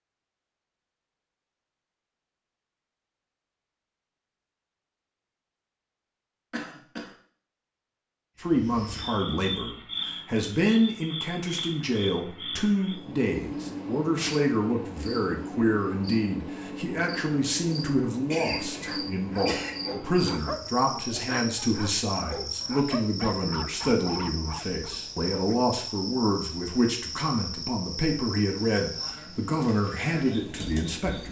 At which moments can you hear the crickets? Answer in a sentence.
You can hear the crickets from 8.4 to 31.2 s.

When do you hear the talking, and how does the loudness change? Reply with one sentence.
The talking can be heard from 8.4 to 31.2 s, at a steady volume.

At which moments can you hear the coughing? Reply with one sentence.
The coughing can be heard from 6.5 to 7.1 s and from 18.3 to 19.7 s.